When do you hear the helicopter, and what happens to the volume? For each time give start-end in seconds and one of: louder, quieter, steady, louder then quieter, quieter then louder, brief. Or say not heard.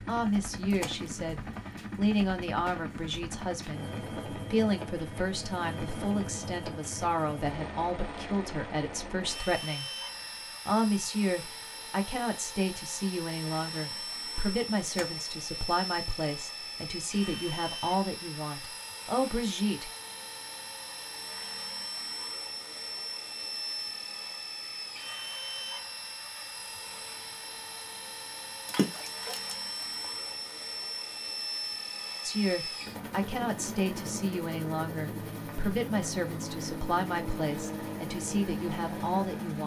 0.0-39.6 steady.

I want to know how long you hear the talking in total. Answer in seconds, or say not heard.
27 s.